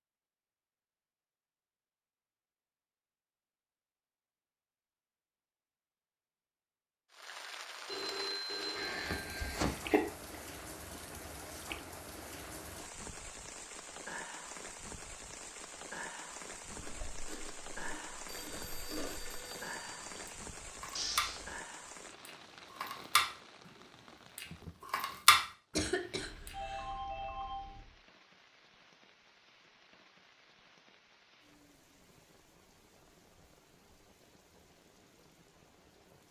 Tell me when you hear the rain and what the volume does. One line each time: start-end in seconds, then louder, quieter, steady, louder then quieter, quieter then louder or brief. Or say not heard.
7.1-36.2 quieter.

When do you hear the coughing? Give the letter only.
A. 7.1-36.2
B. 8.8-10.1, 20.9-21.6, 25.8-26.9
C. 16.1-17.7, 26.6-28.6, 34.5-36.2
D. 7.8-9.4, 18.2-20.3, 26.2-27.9
B.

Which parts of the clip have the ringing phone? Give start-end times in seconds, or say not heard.
7.8-9.4, 18.2-20.3, 26.2-27.9.